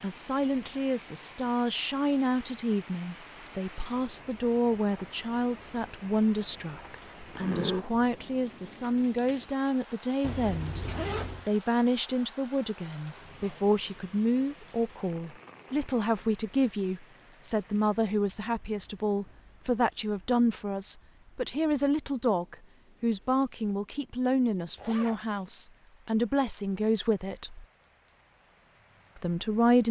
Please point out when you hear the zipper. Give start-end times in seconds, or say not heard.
7.2-7.8, 10.2-11.5, 24.8-25.2.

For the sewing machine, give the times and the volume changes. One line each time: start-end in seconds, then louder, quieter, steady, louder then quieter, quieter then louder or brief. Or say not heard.
not heard.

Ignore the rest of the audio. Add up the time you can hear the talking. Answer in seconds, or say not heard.
28 s.